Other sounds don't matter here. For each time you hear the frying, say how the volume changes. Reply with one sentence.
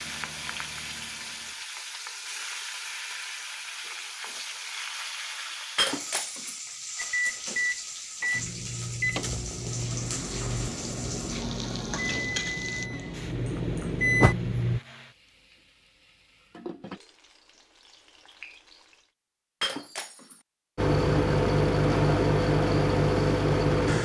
The frying can be heard from 0.0 to 19.1 s, getting quieter.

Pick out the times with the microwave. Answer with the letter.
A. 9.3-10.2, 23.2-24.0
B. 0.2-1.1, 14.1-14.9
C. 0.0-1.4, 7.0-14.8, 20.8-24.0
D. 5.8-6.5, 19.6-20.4
C.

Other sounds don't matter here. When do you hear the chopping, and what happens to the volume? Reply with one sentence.
You can't hear the chopping here.